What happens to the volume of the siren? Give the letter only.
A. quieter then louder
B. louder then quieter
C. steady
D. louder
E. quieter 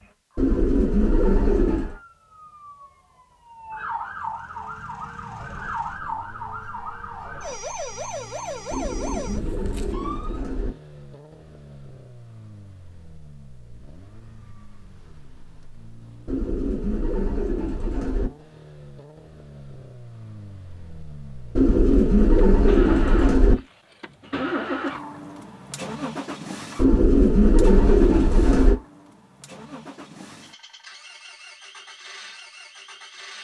D.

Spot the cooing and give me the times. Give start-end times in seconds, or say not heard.
0.3-1.9, 8.7-10.7, 16.2-18.3, 21.6-23.6, 26.8-28.8.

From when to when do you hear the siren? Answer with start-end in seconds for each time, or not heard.
0.0-10.4.